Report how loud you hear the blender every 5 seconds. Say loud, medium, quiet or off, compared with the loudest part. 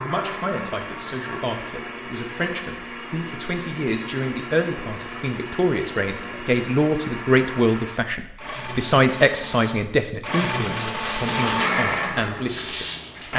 medium, medium, loud.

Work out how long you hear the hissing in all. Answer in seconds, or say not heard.
2 s.